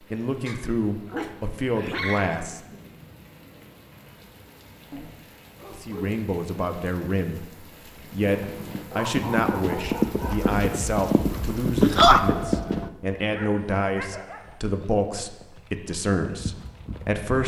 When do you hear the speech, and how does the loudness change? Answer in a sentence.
The speech can be heard briefly from 0.1 to 2.6 s; and from 5.7 to 17.4 s, at a steady volume.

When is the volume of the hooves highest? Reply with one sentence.
The volume of the hooves peaks at 12 seconds.